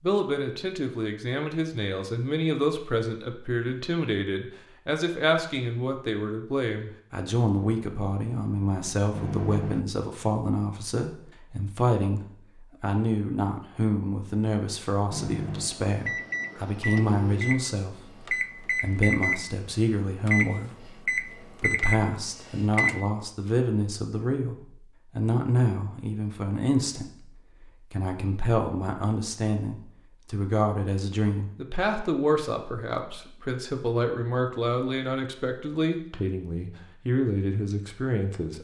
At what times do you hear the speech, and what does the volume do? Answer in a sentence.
The speech can be heard from 0.0 to 24.6 s, at a steady volume; and from 25.1 to 38.6 s, at a steady volume.